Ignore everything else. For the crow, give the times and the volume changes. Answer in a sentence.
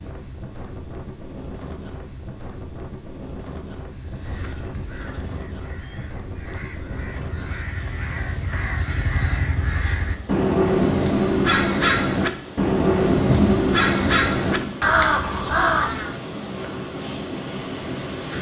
You can hear the crow from 4.0 to 16.1 s, getting louder.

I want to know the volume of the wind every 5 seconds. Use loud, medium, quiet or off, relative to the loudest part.
medium, medium, loud, loud.